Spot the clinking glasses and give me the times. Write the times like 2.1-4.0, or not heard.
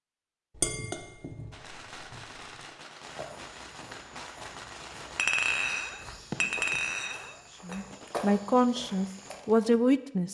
0.6-2.4, 5.2-7.8.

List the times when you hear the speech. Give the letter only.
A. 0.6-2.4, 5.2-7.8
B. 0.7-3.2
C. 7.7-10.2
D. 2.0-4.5
C.